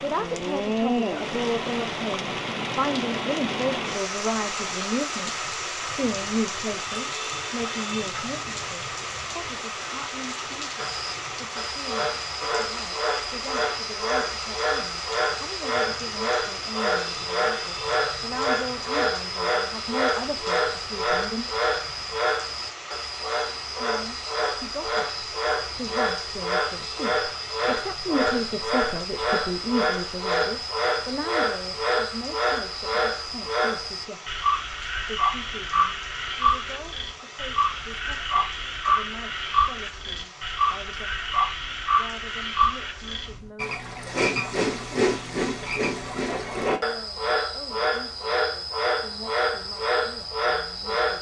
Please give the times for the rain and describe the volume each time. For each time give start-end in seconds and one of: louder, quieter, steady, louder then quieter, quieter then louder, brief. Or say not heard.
0.0-43.5 quieter.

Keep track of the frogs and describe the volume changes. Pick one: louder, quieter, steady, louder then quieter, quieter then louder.
steady.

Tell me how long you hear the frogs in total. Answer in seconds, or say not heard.
40 s.